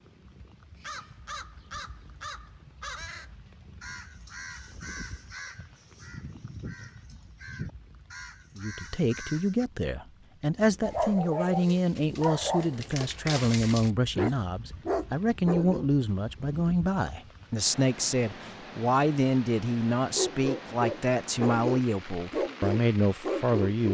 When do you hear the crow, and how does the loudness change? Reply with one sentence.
The crow can be heard from 0.8 to 9.7 s, at a steady volume.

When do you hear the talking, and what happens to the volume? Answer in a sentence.
The talking can be heard from 8.6 to 23.8 s, at a steady volume.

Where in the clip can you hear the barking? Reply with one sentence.
You can hear the barking from 10.8 to 15.8 s and from 20.1 to 23.8 s.